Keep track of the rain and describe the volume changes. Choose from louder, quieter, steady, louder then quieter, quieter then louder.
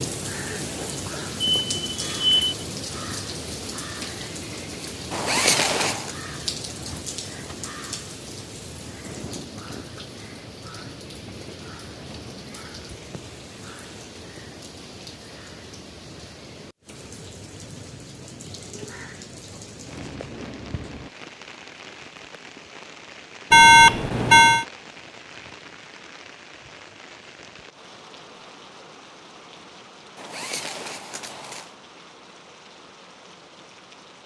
quieter.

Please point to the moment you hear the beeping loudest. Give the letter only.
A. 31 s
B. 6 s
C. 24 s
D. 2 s
C.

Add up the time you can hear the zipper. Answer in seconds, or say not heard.
3 s.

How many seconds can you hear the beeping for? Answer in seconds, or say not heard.
3 s.